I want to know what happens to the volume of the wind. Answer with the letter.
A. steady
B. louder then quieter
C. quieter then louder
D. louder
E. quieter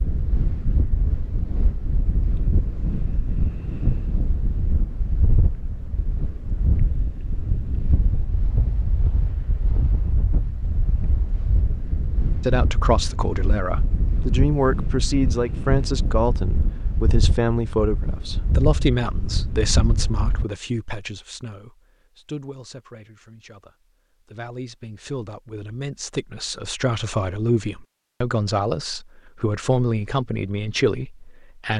A.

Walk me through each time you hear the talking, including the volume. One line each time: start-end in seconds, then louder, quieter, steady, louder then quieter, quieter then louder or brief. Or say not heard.
12.4-31.7 quieter then louder.